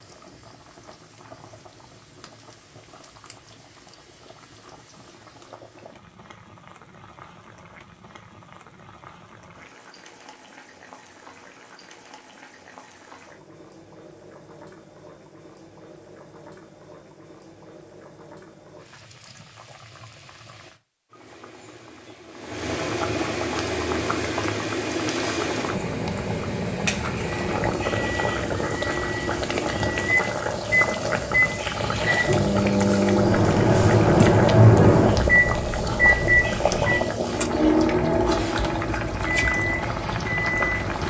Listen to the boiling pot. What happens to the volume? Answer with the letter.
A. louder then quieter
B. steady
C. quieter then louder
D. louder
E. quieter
D.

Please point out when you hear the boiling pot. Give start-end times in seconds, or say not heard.
0.0-41.0.